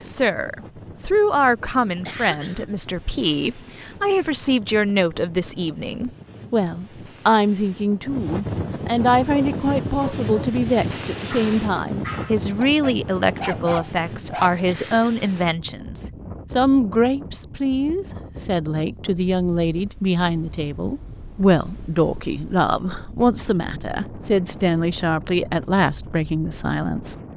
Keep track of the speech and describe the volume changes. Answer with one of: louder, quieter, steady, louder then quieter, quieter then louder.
steady.